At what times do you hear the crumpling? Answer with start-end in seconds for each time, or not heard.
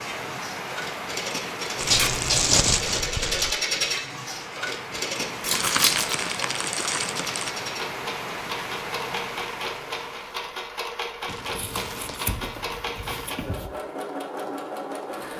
1.8-3.5, 5.5-7.5, 11.2-12.3.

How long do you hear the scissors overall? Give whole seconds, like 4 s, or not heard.
4 s.